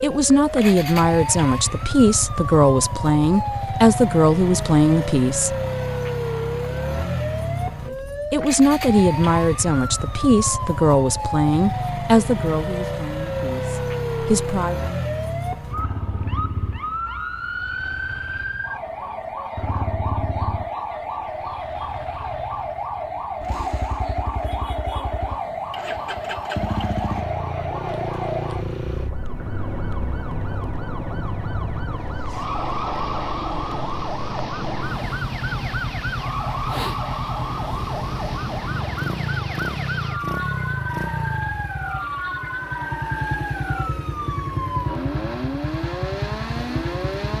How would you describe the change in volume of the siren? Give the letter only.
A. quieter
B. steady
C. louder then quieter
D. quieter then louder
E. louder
B.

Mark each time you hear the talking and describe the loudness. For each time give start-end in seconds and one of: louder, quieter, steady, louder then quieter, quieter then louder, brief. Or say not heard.
0.0-5.5 steady
7.8-14.8 quieter.